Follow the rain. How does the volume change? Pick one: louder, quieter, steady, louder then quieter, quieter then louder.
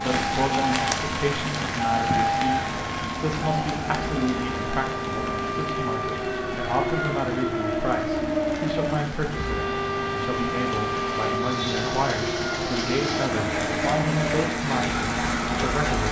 quieter then louder.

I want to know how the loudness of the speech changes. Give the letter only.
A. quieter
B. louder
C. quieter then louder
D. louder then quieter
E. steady
E.